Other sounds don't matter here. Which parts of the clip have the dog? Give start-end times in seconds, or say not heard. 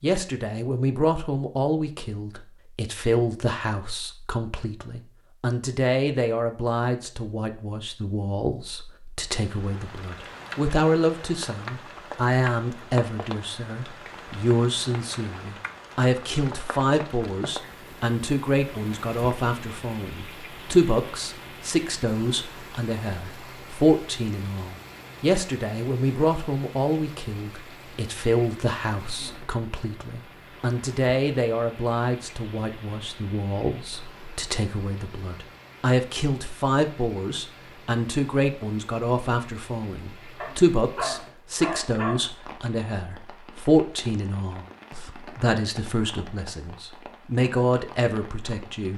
40.4-42.2.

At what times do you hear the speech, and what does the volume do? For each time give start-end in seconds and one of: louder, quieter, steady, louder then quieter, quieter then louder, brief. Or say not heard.
0.0-48.9 steady.